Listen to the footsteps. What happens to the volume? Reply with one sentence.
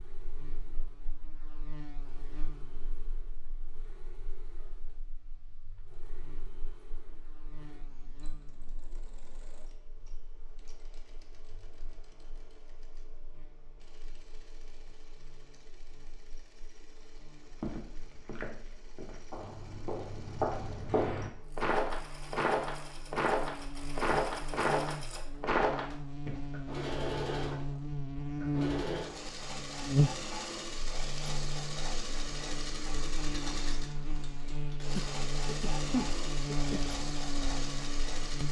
The loudness of the footsteps goes up.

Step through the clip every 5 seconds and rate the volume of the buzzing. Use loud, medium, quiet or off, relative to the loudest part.
quiet, quiet, quiet, quiet, medium, loud, loud, loud.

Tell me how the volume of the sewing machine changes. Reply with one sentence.
The loudness of the sewing machine goes up.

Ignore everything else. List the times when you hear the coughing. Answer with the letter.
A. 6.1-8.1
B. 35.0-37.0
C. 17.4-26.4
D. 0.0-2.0
B.